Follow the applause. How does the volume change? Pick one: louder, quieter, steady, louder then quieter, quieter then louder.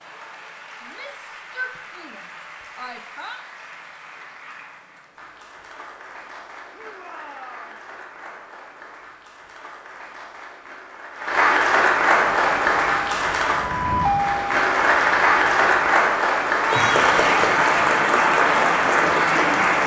louder.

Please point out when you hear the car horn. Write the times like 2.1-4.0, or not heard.
not heard.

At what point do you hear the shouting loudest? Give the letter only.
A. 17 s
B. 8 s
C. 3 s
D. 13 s
A.